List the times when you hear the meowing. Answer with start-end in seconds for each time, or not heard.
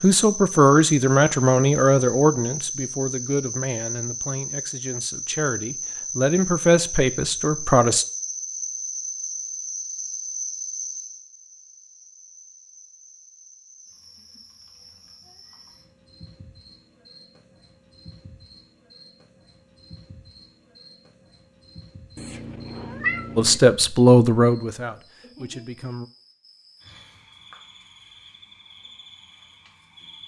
22.1-23.6.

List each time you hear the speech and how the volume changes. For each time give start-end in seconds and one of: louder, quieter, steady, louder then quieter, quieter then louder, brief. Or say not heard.
0.0-8.1 quieter then louder
23.4-26.1 brief.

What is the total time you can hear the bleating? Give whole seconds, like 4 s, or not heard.
not heard.